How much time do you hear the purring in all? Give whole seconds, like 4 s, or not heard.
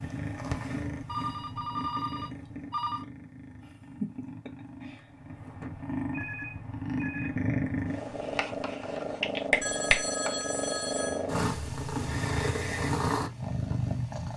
14 s.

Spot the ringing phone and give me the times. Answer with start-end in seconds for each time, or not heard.
1.1-3.0, 5.5-7.3, 9.6-11.2.